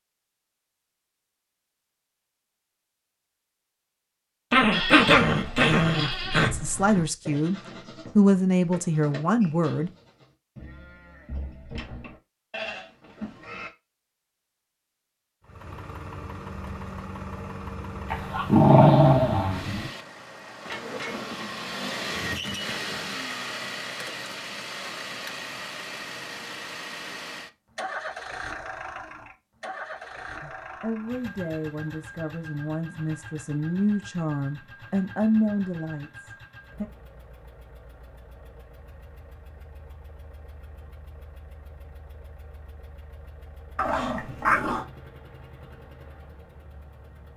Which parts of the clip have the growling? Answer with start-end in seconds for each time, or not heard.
4.5-6.5, 18.1-19.9, 43.8-44.9.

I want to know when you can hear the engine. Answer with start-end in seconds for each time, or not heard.
15.4-47.3.